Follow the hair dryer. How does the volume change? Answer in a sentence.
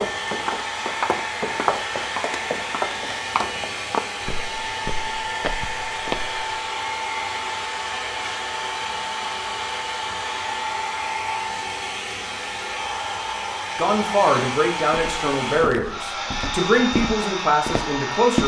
The volume of the hair dryer stays about the same.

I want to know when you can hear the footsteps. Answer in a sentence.
The footsteps can be heard from 0.0 to 6.5 s and from 14.9 to 18.4 s.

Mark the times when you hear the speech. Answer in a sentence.
You can hear the speech from 13.8 to 18.4 s.